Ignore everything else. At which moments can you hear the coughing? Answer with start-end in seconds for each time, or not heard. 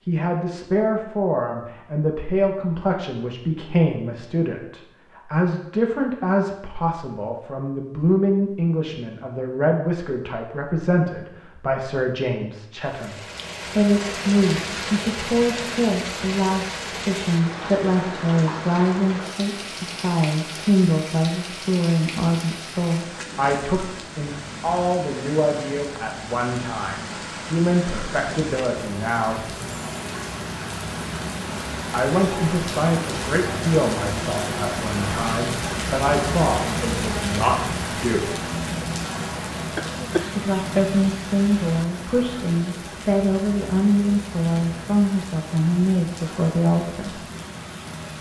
39.8-41.0.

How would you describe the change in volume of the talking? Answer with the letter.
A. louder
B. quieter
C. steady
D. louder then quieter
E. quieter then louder
C.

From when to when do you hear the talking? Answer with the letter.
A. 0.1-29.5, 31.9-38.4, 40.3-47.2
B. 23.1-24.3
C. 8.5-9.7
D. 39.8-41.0
A.